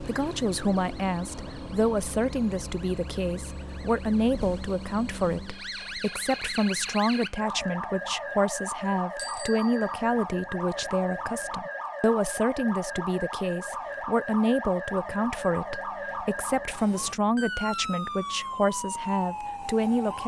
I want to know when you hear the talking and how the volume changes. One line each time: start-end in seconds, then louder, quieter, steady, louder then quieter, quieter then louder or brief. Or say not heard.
0.0-20.2 steady.